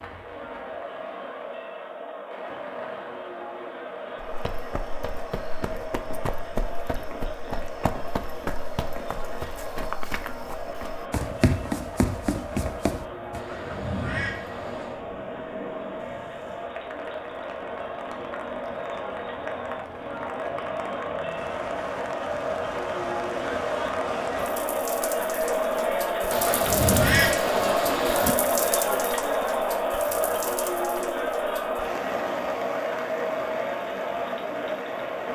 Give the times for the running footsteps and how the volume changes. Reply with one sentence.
You can hear the running footsteps from 4.2 to 13.4 s, getting louder.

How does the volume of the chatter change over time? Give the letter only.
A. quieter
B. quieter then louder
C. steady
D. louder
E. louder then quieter
D.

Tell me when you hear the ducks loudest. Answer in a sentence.
The volume of the ducks peaks at 27 seconds.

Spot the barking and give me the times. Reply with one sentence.
You can't hear the barking here.